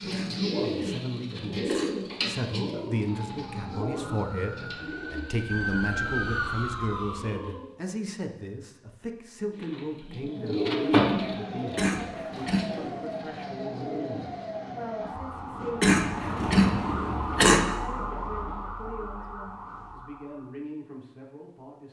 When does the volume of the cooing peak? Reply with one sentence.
The volume of the cooing peaks at 11 seconds.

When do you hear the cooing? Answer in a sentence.
The cooing can be heard from 0.0 to 7.8 s and from 9.5 to 14.6 s.